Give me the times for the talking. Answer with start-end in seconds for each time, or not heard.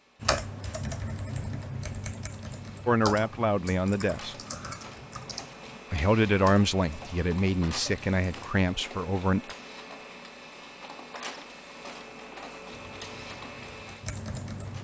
2.9-4.3, 5.9-9.6.